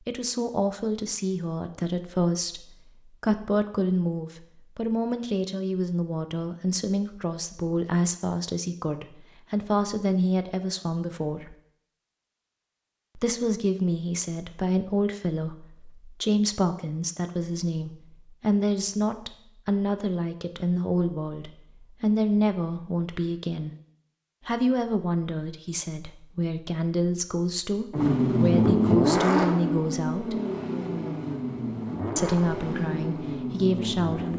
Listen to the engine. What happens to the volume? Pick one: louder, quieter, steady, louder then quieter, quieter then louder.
quieter.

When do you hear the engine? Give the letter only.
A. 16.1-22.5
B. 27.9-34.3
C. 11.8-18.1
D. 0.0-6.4
B.